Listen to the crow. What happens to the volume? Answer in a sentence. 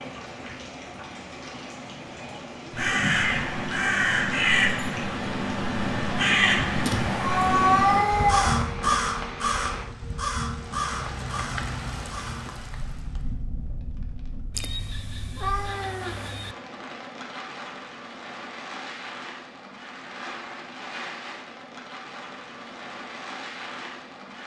The loudness of the crow goes down.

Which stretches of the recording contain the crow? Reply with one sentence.
The crow can be heard from 2.7 to 12.5 s.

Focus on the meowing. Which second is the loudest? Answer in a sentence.
The volume of the meowing peaks at 8 seconds.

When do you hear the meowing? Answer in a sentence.
You can hear the meowing from 6.8 to 8.7 s and from 14.6 to 16.6 s.